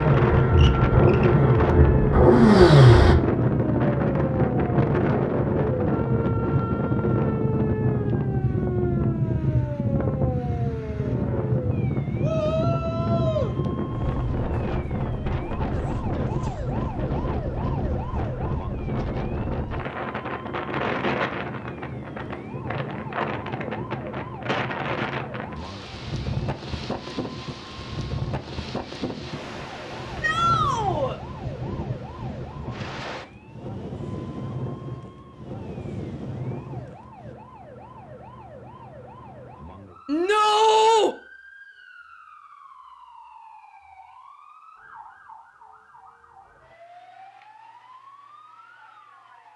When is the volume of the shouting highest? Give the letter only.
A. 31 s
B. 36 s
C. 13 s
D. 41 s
D.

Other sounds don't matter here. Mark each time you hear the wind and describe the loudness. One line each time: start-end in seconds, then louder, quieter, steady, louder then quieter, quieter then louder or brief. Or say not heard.
0.0-37.4 quieter.